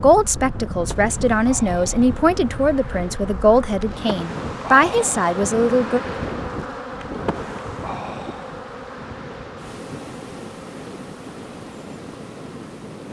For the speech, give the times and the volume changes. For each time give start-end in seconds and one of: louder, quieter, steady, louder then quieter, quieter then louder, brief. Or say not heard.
0.0-6.0 steady.